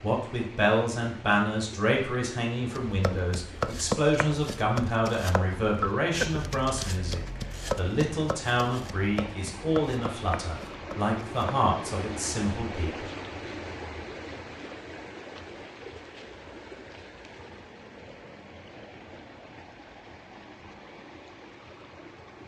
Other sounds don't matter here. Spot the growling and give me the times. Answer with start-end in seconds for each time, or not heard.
not heard.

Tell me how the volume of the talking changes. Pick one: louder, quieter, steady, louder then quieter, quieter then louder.
steady.